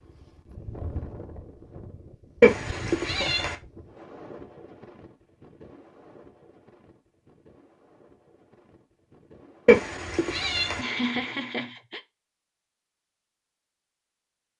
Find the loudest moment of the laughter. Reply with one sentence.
The loudest moment of the laughter is at 11 seconds.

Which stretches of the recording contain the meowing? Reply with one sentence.
The meowing can be heard from 2.4 to 3.5 s and from 9.7 to 10.8 s.